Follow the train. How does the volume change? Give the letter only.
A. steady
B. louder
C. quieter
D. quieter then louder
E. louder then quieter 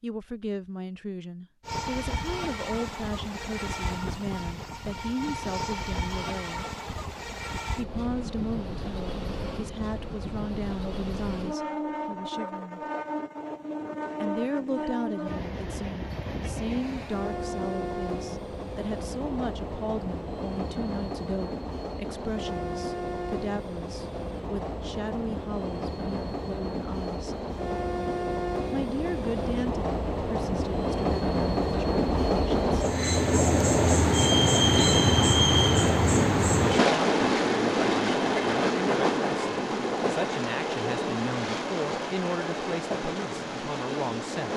B.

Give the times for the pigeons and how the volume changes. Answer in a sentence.
The pigeons can't be heard in this clip.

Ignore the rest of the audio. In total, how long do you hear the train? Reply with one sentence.
You can hear the train for 43 seconds altogether.